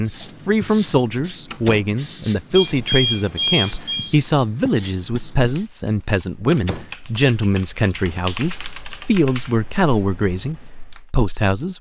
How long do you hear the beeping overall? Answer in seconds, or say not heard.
3 s.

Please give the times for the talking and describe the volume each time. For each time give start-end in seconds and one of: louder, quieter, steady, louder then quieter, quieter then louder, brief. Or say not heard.
0.0-11.7 steady.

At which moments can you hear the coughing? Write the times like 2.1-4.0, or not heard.
not heard.